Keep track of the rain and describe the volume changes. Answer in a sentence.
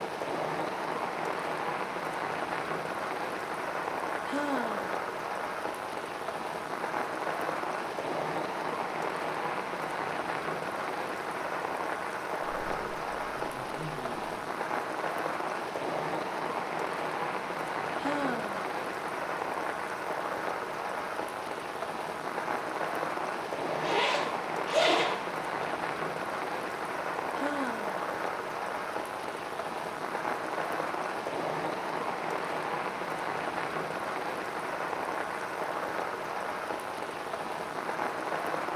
The volume of the rain stays about the same.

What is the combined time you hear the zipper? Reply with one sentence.
You can hear the zipper for 4 seconds altogether.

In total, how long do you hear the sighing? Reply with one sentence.
You can hear the sighing for 2 seconds altogether.